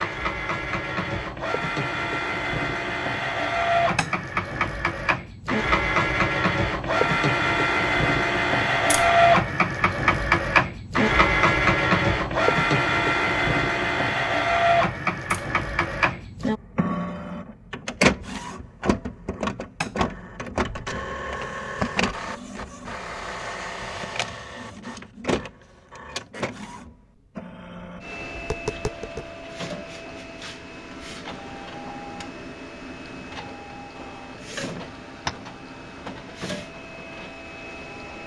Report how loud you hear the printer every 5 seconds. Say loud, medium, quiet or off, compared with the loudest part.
medium, loud, loud, medium, medium, quiet, quiet, quiet.